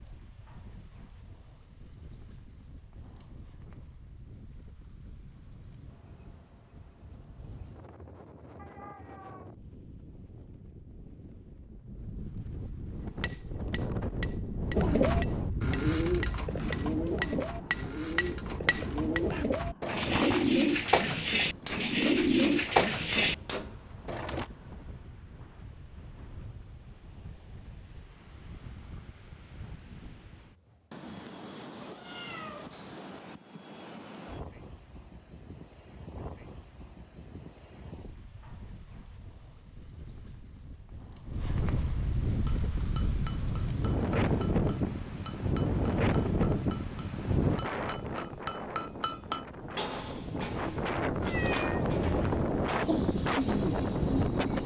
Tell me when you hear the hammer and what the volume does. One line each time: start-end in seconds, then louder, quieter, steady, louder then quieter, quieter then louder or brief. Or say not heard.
12.9-24.4 louder
42.5-53.6 louder then quieter.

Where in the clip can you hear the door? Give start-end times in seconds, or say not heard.
not heard.